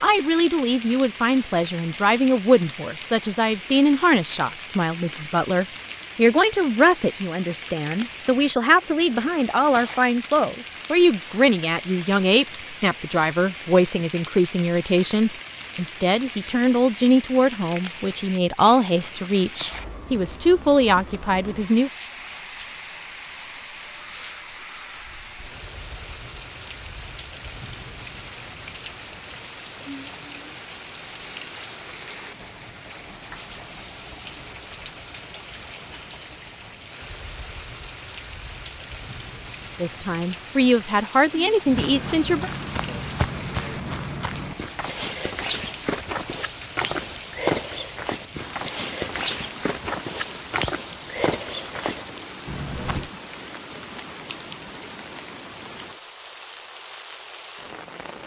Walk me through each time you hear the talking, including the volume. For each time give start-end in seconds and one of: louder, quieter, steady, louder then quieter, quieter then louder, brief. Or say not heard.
0.0-21.9 steady
39.8-42.5 brief.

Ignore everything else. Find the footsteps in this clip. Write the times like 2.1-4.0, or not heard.
41.6-53.1.